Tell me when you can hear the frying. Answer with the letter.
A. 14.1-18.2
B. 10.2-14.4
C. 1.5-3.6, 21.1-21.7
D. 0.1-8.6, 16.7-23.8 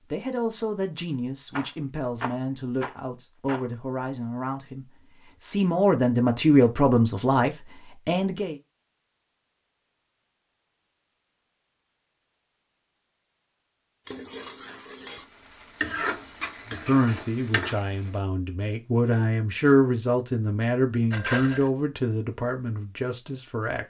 A.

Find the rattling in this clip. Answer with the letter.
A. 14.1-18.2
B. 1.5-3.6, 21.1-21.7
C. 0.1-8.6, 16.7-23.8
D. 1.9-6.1
B.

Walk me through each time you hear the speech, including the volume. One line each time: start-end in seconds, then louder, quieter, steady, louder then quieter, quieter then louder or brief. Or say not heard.
0.1-8.6 louder
16.7-23.8 louder then quieter.